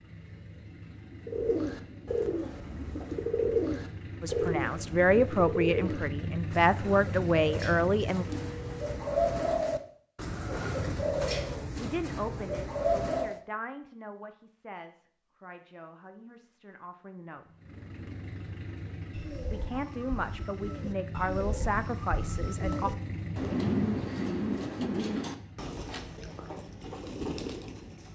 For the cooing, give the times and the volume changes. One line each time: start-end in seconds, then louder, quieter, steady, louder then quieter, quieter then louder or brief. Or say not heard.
1.2-13.4 quieter then louder
19.1-28.1 louder then quieter.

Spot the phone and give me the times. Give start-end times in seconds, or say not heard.
8.2-9.1.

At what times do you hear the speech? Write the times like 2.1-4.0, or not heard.
4.2-8.2, 11.8-17.5, 19.5-22.9.